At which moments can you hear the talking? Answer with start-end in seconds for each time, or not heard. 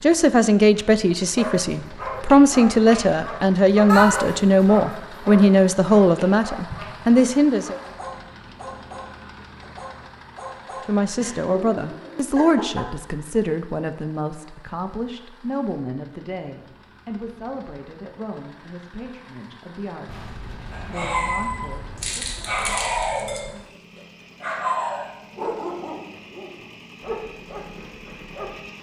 0.0-7.8, 10.8-22.5.